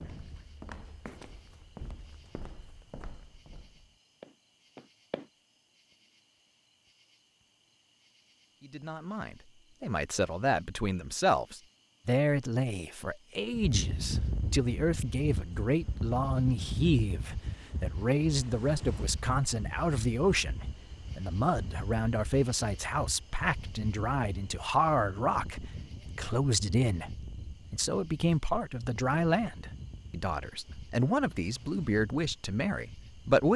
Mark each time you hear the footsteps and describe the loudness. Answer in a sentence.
The footsteps can be heard from 0.0 to 5.3 s, getting quieter then louder.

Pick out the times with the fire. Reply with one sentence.
The fire can't be heard in this clip.